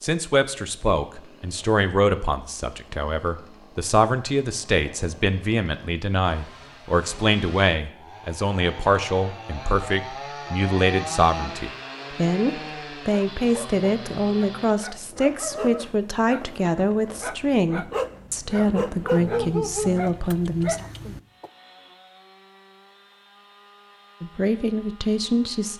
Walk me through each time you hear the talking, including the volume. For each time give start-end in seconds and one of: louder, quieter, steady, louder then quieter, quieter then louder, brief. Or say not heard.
0.0-20.8 steady
24.2-25.7 brief.